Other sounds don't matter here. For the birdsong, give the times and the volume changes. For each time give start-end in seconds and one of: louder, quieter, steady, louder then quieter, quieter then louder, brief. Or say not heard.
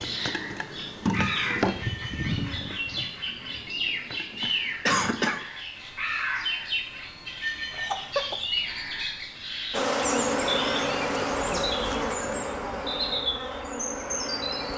0.0-14.7 steady.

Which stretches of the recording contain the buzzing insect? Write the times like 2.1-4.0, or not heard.
0.0-5.2, 9.7-14.7.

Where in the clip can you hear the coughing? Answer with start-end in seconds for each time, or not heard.
4.3-5.4, 7.8-8.4.